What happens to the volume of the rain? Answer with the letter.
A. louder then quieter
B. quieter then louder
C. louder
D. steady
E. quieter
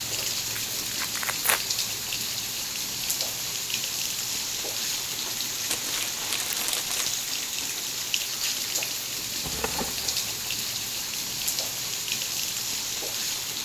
D.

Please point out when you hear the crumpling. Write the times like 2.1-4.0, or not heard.
0.6-1.6, 5.7-7.2, 9.4-10.2.